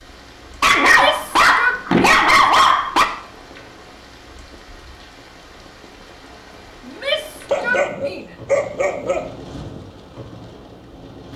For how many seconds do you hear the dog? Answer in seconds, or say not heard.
4 s.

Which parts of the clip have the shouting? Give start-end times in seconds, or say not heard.
0.8-2.3, 6.8-8.3.